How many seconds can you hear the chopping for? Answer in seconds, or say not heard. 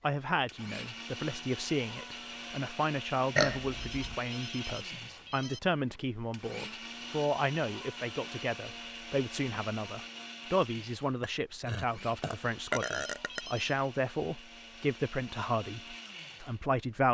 not heard.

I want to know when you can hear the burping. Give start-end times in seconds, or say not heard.
3.4-4.2, 11.2-13.4.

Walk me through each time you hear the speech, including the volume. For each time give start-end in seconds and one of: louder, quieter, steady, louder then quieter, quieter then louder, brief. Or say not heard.
0.0-17.0 steady.